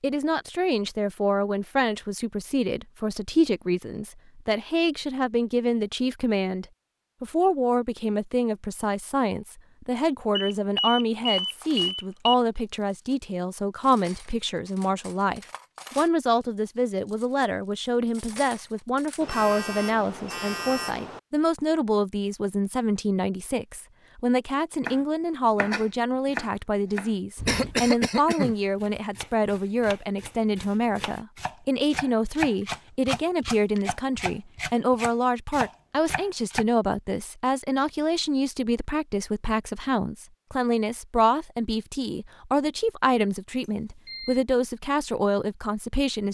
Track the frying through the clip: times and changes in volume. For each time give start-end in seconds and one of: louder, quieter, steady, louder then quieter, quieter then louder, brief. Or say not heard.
not heard.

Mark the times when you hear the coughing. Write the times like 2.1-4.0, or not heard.
27.4-29.0.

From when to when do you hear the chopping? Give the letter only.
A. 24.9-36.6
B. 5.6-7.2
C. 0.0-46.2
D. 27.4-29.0
A.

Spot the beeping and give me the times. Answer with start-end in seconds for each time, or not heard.
10.3-12.3, 19.2-21.2, 43.6-44.5.